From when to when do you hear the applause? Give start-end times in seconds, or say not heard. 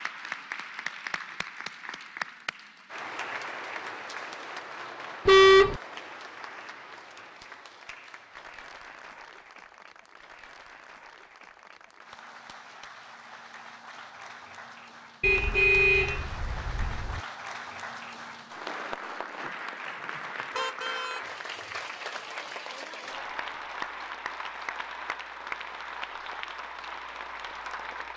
0.0-28.1.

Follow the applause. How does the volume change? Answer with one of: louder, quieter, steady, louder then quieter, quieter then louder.
quieter then louder.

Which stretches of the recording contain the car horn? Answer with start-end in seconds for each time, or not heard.
5.2-5.8, 15.2-17.2, 20.6-21.2.